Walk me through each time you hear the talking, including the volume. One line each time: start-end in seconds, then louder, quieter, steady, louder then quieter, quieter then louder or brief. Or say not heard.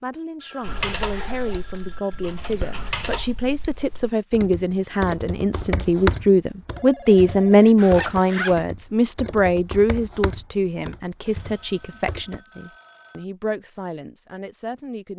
0.0-15.1 louder then quieter.